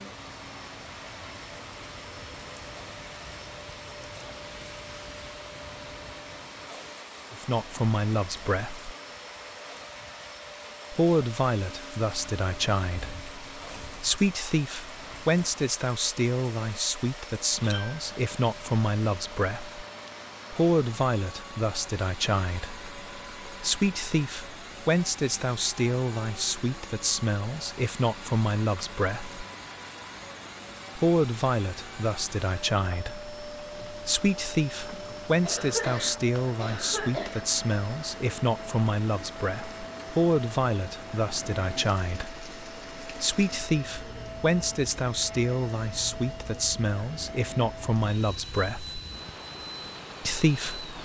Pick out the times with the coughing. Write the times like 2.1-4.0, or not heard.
35.4-37.5.